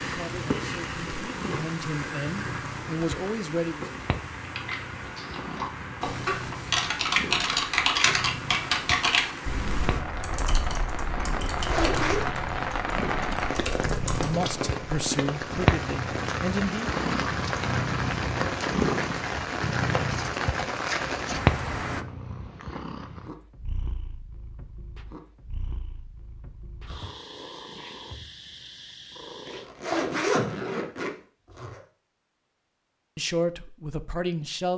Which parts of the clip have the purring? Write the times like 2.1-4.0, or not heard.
0.0-29.7.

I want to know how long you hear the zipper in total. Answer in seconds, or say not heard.
3 s.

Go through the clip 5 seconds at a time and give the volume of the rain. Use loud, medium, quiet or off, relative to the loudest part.
medium, medium, loud, loud, loud, off, off.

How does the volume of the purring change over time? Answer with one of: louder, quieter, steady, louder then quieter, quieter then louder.
louder then quieter.